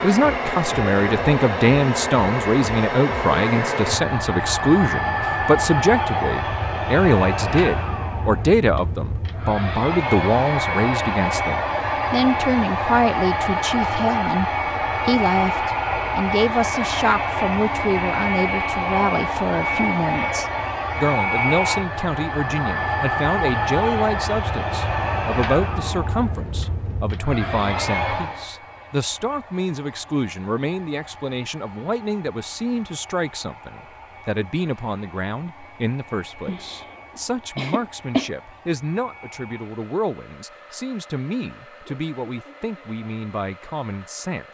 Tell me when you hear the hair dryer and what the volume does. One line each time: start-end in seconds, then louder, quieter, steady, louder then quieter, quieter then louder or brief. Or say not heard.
0.0-44.5 quieter.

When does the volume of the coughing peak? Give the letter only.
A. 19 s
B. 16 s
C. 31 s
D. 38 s
D.